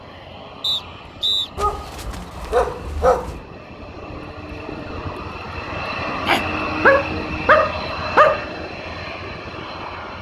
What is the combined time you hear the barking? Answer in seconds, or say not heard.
4 s.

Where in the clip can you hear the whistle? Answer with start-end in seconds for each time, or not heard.
0.6-1.5.